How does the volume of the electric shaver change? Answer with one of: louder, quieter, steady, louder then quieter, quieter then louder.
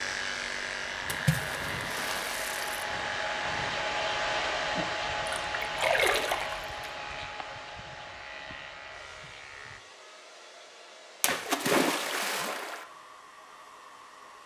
quieter.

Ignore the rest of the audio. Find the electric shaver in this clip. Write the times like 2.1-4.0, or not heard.
0.0-9.8.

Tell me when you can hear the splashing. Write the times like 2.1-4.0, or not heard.
1.1-2.7, 5.2-6.7, 11.2-12.8.